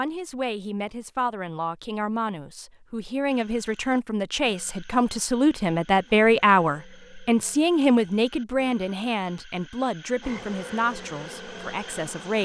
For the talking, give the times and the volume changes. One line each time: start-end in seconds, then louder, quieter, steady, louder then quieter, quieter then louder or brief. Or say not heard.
0.0-12.4 louder then quieter.